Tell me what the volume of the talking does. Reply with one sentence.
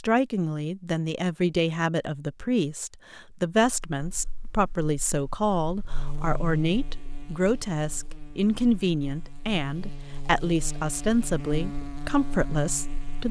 The volume of the talking stays about the same.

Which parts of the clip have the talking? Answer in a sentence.
The talking can be heard from 0.0 to 13.2 s.